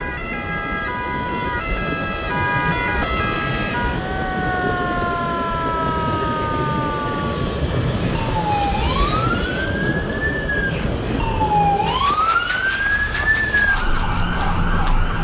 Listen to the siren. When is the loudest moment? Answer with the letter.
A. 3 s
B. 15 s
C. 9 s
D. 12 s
D.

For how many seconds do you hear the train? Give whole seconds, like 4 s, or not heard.
15 s.